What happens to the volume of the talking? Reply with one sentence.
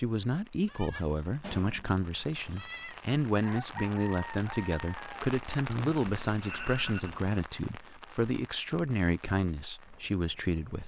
The loudness of the talking stays about the same.